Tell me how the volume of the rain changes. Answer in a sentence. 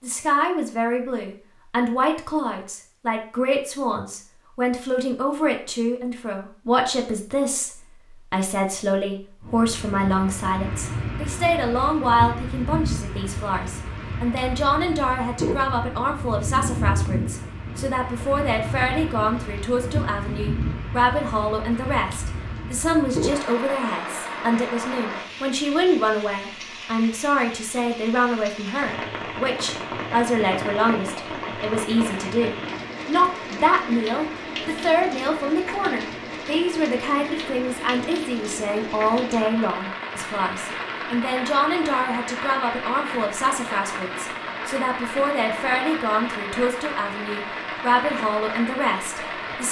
The volume of the rain stays about the same.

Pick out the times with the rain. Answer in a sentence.
You can hear the rain from 9.4 to 49.6 s.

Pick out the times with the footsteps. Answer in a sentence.
You can't hear the footsteps here.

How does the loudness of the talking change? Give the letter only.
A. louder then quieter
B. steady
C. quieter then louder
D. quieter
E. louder
B.